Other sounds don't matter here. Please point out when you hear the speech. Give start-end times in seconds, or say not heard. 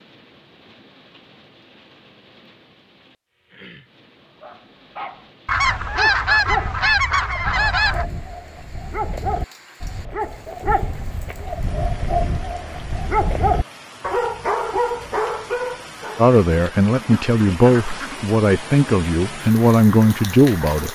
16.1-20.9.